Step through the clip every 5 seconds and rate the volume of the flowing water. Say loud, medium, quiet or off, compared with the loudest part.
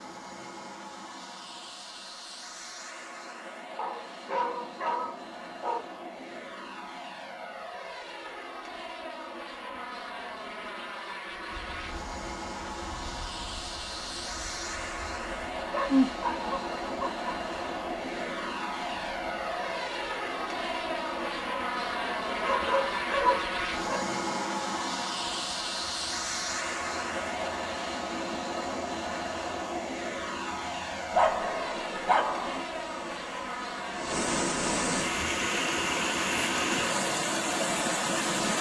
off, off, quiet, quiet, quiet, quiet, medium, loud.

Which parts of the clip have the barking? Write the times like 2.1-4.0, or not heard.
3.8-5.8, 15.7-17.3, 22.2-24.1, 31.1-32.6.